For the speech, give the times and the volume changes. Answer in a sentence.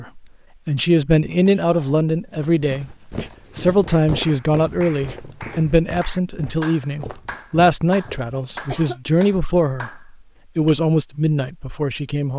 You can hear the speech briefly from 0.0 to 3.0 s; and from 3.5 to 12.3 s, at a steady volume.